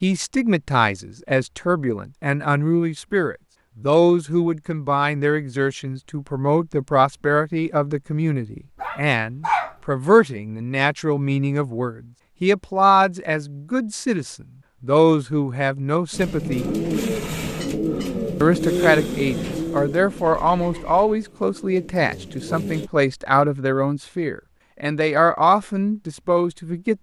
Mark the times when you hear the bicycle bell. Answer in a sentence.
The bicycle bell can't be heard in this clip.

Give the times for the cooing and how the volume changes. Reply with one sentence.
You can hear the cooing from 16.1 to 22.9 s, getting quieter.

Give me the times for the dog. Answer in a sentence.
The dog can be heard from 8.8 to 9.8 s.